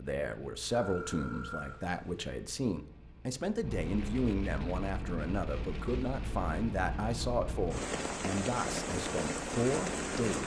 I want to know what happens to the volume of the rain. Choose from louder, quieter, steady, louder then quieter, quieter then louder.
louder.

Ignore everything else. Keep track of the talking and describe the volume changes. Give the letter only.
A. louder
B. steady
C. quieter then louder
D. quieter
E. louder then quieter
B.